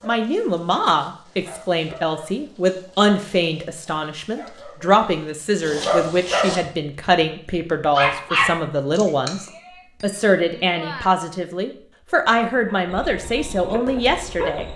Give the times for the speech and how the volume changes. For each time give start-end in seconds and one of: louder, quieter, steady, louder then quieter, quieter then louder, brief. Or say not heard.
0.1-14.7 steady.